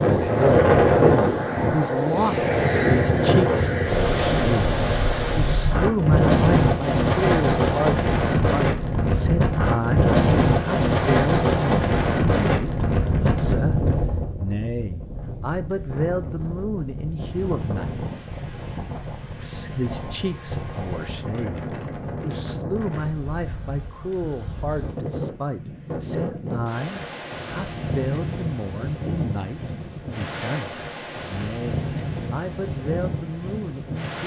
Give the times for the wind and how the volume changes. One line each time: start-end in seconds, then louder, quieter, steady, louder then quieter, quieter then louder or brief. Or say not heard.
0.0-34.2 quieter.